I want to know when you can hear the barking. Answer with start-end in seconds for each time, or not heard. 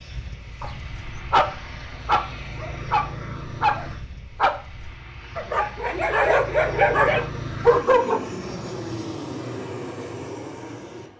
0.6-8.2.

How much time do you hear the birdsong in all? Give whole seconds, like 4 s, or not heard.
not heard.